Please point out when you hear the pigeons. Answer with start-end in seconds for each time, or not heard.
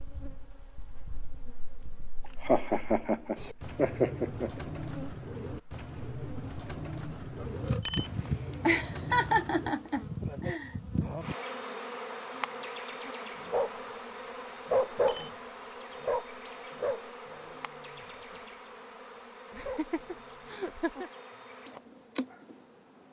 3.4-9.8.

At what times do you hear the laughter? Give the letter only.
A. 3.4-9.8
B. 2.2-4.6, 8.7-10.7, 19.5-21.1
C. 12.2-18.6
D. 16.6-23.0
B.